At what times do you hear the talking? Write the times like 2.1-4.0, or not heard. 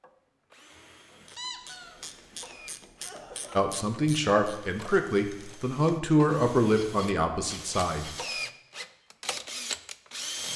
3.5-8.3.